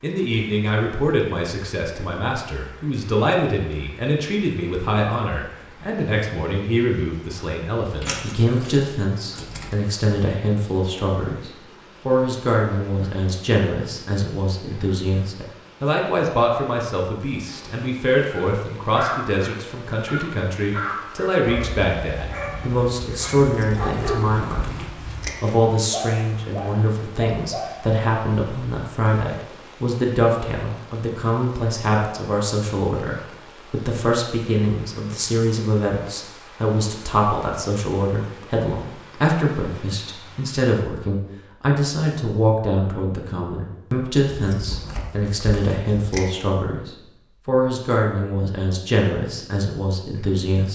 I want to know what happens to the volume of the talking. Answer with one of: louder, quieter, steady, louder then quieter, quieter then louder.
steady.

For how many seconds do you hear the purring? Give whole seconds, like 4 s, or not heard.
not heard.